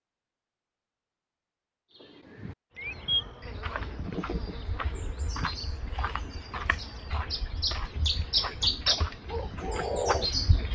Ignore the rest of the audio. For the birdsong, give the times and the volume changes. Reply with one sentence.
The birdsong can be heard from 1.9 to 10.7 s, getting quieter then louder.